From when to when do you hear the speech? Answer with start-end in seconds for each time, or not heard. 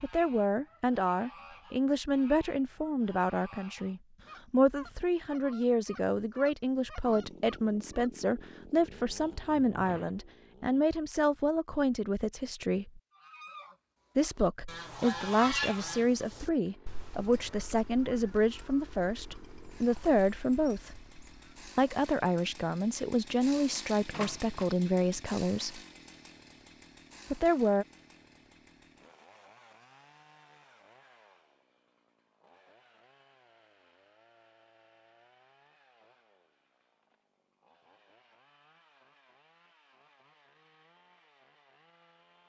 0.0-13.0, 14.2-21.1, 21.8-25.8, 27.3-27.9.